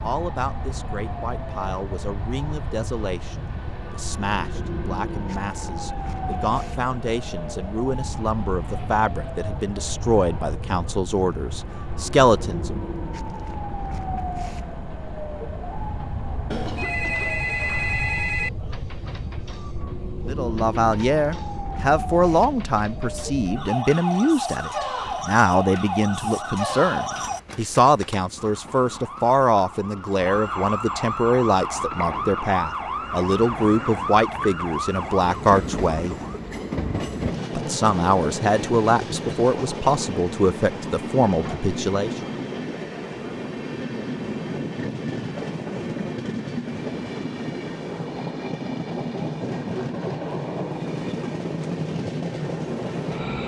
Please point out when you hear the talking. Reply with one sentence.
You can hear the talking from 0.0 to 12.8 s, from 20.2 to 36.1 s and from 37.5 to 42.1 s.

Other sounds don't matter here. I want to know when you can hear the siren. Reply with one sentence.
You can hear the siren from 0.0 to 36.4 s.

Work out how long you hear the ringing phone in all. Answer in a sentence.
The ringing phone can be heard for 3 seconds in total.